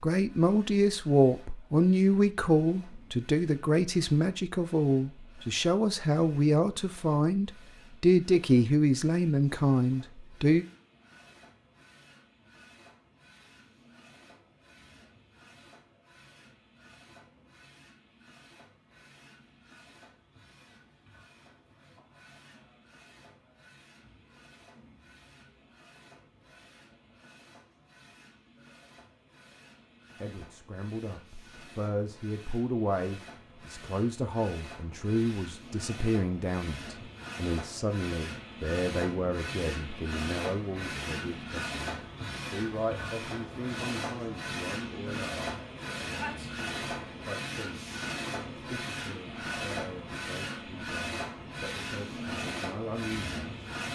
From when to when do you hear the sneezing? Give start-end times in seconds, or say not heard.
46.1-46.6.